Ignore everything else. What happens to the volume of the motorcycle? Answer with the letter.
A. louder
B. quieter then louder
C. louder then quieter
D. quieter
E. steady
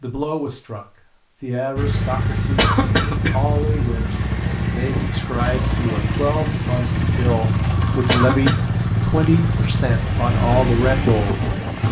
E.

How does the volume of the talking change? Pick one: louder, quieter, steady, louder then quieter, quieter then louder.
louder.